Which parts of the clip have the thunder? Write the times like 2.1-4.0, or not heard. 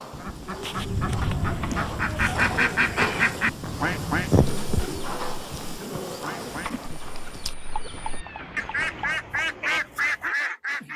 0.1-4.4.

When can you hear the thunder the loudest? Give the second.
1 s.